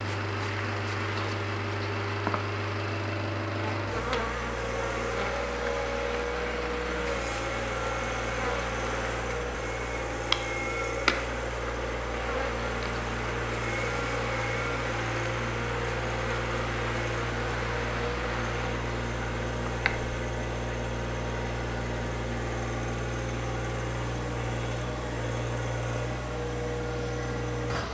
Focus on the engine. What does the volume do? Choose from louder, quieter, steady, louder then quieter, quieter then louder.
steady.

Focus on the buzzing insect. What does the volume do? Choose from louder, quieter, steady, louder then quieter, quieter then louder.
steady.